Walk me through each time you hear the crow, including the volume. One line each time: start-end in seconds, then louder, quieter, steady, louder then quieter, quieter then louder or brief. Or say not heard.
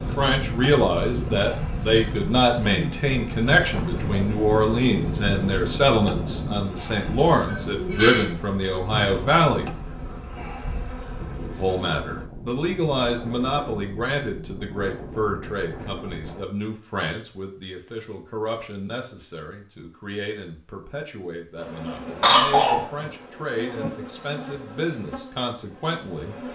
not heard.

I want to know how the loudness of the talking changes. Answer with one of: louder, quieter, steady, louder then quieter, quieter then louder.
quieter.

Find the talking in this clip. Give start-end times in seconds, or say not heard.
0.0-9.7, 11.6-26.4.